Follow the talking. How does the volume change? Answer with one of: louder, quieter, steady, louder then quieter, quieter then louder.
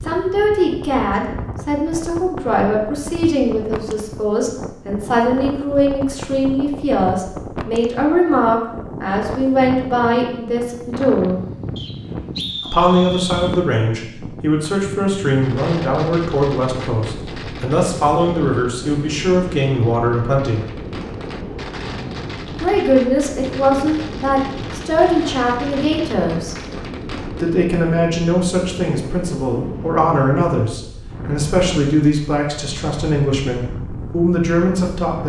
steady.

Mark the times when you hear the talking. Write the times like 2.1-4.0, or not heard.
0.0-11.3, 12.7-20.6, 22.6-26.6, 27.3-35.2.